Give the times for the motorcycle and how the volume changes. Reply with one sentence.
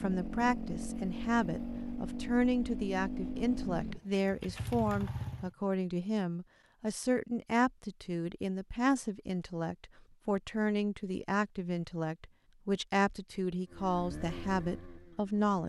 The motorcycle can be heard from 0.0 to 5.5 s, at a steady volume; and briefly from 13.7 to 15.6 s.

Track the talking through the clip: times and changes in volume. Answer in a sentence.
The talking can be heard from 0.0 to 15.6 s, at a steady volume.